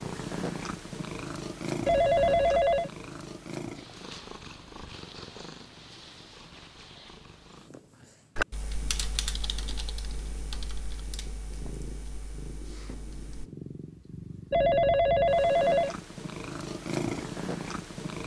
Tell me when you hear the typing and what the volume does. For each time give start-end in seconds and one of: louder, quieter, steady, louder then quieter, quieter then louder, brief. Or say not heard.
8.3-13.5 quieter.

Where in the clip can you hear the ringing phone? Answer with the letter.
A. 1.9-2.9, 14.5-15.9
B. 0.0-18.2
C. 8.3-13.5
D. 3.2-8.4
A.